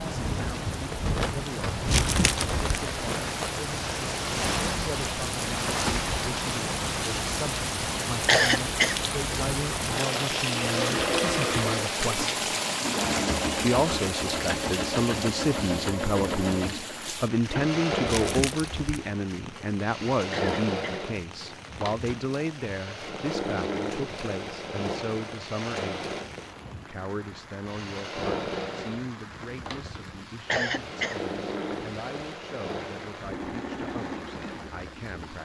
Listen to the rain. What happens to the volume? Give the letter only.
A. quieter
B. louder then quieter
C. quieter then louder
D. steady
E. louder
A.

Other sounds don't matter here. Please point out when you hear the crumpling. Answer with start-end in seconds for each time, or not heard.
1.9-2.6, 18.1-19.0.